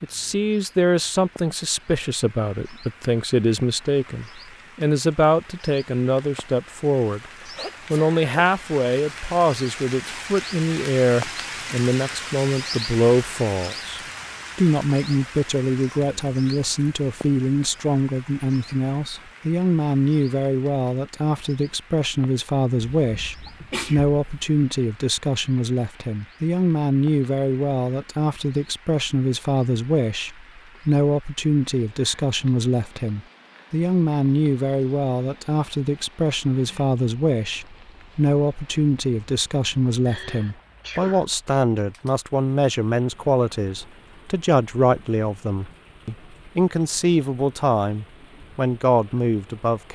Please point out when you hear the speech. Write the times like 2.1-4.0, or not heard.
0.0-7.2, 7.9-49.8.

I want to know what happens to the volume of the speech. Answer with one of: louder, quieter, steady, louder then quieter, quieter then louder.
steady.